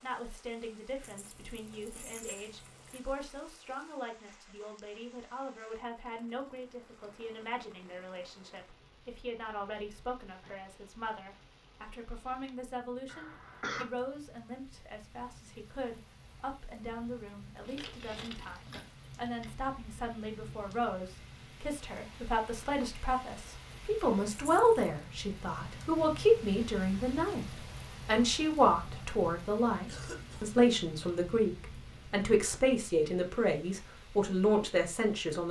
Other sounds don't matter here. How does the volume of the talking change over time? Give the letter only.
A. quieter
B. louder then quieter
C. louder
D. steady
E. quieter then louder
C.